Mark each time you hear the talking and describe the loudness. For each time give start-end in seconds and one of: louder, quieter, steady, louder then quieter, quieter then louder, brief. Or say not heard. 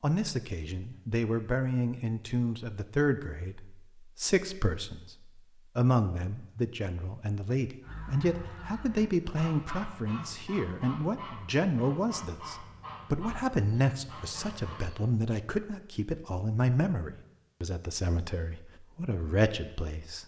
0.0-20.2 steady.